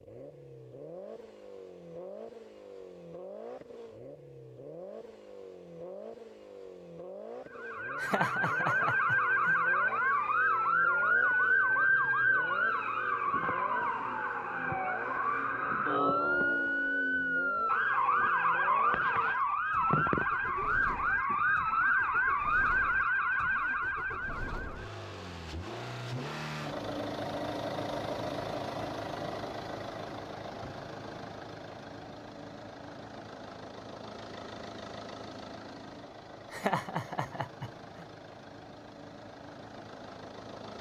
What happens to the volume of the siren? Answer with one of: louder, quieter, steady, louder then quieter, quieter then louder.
steady.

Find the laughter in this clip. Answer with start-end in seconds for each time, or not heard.
8.0-9.6, 36.5-38.0.